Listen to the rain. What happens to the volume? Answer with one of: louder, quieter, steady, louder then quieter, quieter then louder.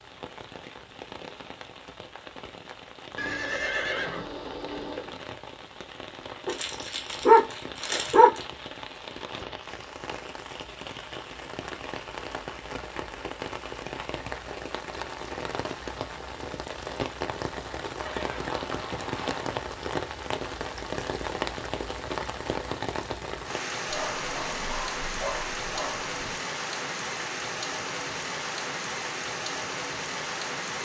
louder.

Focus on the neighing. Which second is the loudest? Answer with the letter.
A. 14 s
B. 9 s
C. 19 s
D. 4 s
D.